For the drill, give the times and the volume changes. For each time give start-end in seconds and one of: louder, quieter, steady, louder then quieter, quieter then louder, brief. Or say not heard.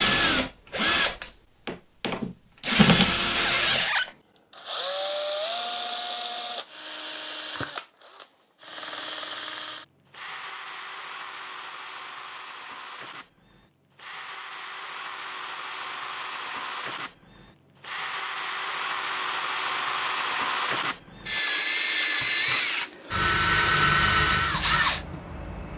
0.0-25.7 quieter then louder.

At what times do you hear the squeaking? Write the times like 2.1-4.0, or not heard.
3.4-4.1.